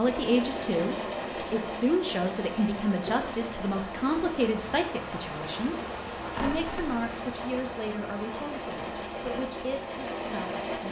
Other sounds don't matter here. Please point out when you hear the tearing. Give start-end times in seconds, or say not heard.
6.3-7.0.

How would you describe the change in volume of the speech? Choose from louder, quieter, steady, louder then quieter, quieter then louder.
quieter.